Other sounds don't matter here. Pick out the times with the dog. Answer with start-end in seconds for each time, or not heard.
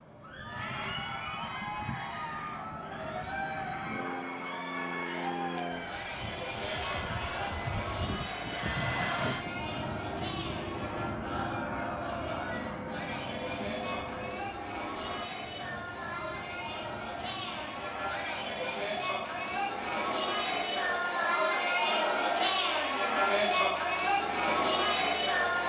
not heard.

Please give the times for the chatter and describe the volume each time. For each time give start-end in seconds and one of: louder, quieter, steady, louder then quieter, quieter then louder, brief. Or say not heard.
0.1-25.6 louder.